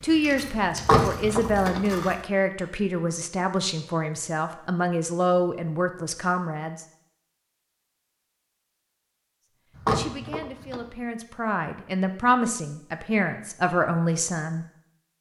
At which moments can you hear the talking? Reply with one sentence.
The talking can be heard from 0.0 to 6.8 s and from 9.8 to 14.7 s.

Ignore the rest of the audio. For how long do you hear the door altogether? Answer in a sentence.
You can hear the door for 2 seconds altogether.